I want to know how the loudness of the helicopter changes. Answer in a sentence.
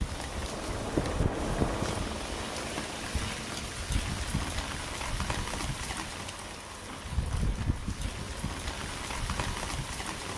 The volume of the helicopter goes down.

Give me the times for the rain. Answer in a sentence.
The rain can be heard from 0.0 to 10.3 s.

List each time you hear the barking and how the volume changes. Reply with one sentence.
You can't hear the barking here.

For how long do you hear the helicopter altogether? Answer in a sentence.
The helicopter can be heard for 10 seconds in total.